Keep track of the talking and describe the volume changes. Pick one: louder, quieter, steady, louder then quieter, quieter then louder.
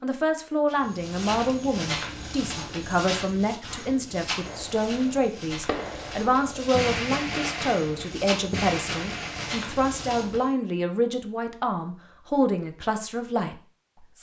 steady.